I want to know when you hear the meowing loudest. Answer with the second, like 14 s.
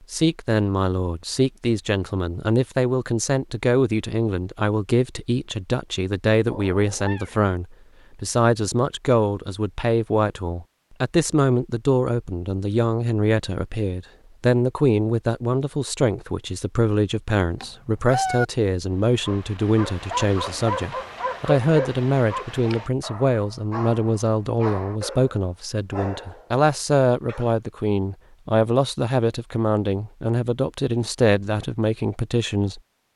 18 s.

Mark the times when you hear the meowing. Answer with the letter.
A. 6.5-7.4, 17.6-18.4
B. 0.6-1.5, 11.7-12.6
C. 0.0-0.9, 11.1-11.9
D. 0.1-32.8
A.